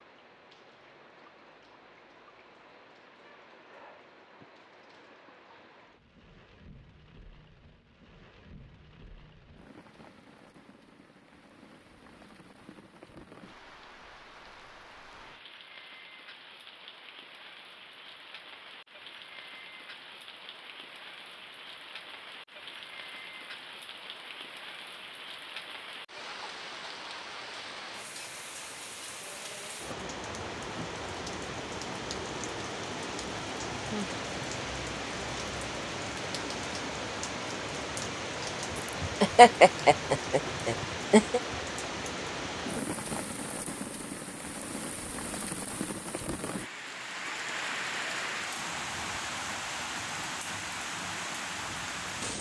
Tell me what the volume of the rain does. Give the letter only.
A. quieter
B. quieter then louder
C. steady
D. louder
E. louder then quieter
D.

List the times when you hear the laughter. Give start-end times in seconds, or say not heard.
38.8-41.4.